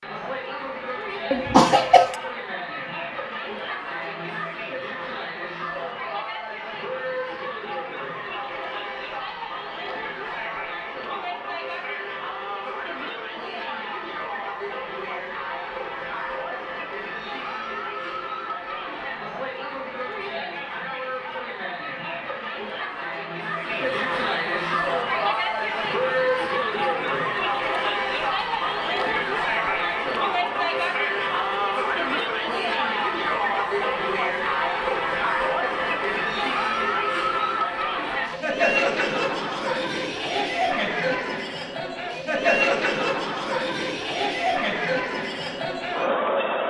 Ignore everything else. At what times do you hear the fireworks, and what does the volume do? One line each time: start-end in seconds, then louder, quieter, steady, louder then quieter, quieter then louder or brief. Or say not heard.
not heard.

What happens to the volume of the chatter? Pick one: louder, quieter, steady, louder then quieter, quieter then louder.
louder.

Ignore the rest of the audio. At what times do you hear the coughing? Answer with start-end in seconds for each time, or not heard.
1.3-2.1.